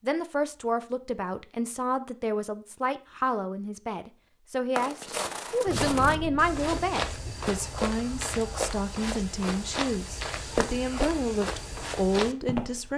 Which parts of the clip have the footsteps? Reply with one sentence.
The footsteps can be heard from 4.8 to 12.9 s.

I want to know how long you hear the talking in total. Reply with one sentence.
You can hear the talking for 13 seconds altogether.